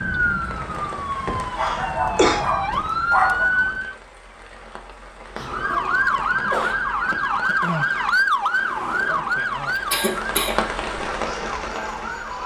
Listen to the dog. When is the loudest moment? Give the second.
3 s.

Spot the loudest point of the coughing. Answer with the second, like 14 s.
2 s.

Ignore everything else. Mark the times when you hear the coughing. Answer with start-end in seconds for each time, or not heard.
1.2-2.4, 5.3-6.8, 9.8-10.6.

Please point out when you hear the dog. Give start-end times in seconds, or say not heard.
1.6-3.5.